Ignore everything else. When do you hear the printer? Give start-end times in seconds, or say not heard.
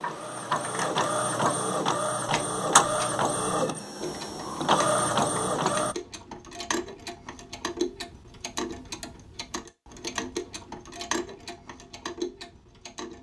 0.0-6.0.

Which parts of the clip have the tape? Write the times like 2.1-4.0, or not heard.
not heard.